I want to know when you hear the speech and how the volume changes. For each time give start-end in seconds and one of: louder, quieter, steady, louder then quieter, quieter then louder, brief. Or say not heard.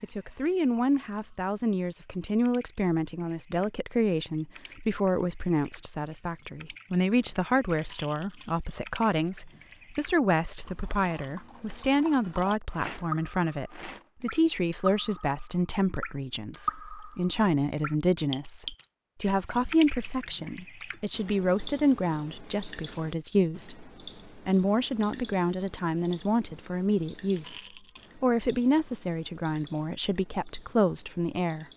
0.0-31.6 steady.